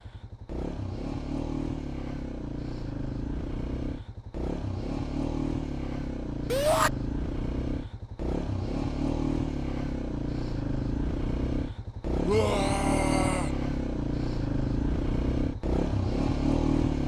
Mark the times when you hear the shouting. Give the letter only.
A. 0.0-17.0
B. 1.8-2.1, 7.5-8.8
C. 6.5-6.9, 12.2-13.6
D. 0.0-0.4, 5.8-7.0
C.